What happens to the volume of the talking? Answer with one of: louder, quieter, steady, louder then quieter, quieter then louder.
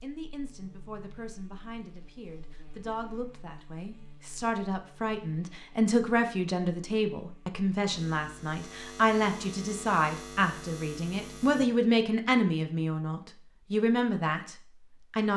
louder.